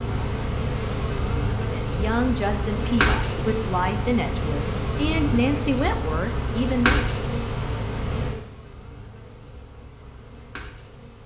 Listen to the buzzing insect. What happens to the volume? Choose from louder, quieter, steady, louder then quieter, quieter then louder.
quieter.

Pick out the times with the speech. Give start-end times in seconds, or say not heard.
1.9-7.2.